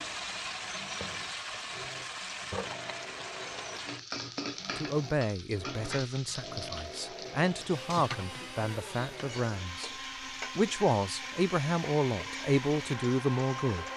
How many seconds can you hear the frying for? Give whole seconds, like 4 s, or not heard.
14 s.